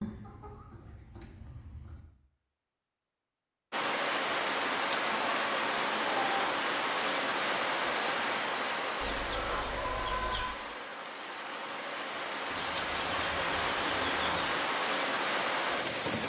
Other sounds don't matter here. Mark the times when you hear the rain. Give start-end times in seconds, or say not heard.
3.7-16.2.